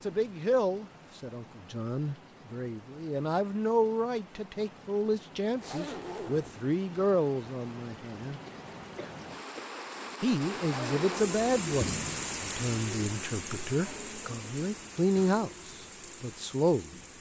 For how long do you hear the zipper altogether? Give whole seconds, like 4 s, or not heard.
2 s.